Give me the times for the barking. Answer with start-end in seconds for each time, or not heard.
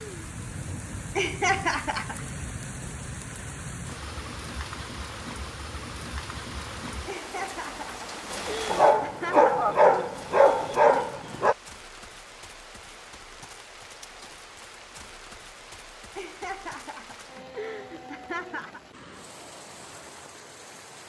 8.7-11.6.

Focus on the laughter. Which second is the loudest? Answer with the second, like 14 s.
2 s.